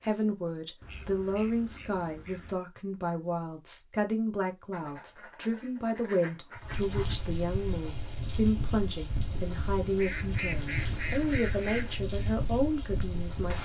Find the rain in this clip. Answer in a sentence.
The rain can be heard from 6.5 to 13.5 s.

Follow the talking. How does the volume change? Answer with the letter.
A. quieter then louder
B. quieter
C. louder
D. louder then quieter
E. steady
E.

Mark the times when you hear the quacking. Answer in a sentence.
The quacking can be heard from 0.8 to 2.6 s, from 4.7 to 7.2 s and from 9.9 to 12.0 s.